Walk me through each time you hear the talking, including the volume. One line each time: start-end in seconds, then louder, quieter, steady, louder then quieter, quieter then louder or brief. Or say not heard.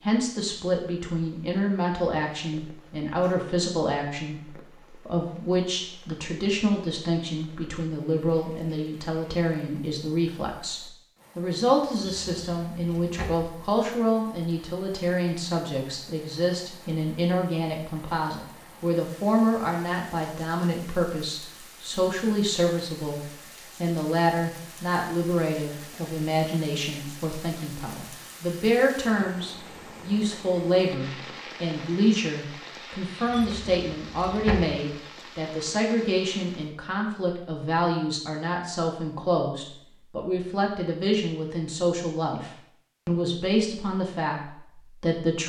0.0-45.4 steady.